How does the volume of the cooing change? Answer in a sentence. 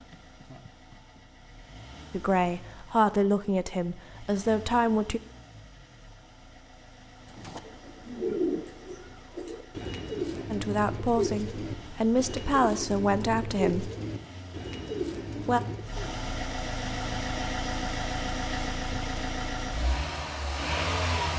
The loudness of the cooing stays about the same.